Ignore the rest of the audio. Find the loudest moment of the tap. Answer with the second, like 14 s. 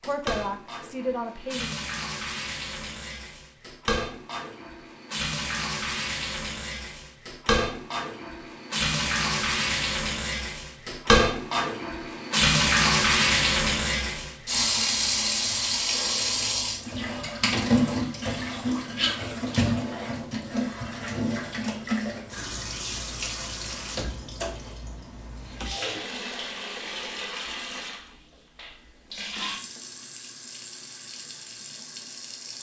13 s.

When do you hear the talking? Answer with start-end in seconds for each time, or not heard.
0.0-1.8.